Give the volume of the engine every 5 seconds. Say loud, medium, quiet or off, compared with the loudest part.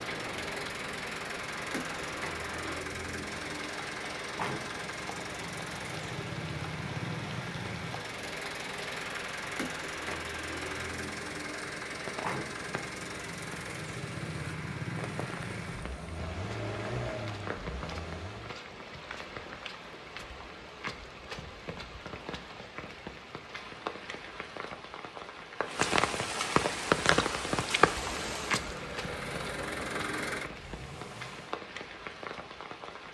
loud, loud, loud, loud, off, loud, loud.